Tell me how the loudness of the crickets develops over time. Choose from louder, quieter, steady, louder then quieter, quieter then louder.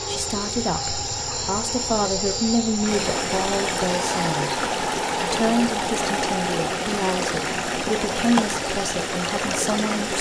quieter.